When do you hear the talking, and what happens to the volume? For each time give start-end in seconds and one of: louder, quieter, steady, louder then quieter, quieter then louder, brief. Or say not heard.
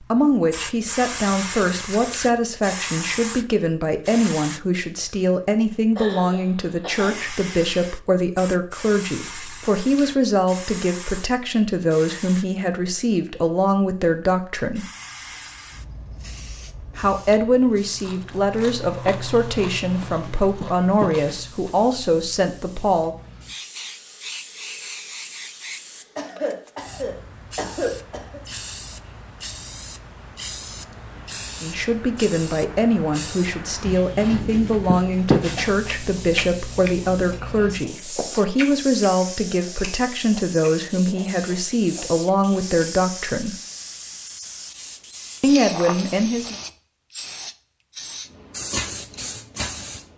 0.0-14.8 steady
16.9-23.1 steady
31.6-43.5 steady
45.4-46.5 brief.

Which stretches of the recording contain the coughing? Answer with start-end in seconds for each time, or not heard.
6.0-7.2, 26.1-28.4.